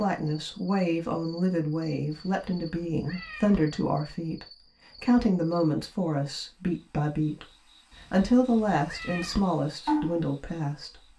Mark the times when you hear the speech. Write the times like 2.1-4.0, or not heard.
0.0-11.1.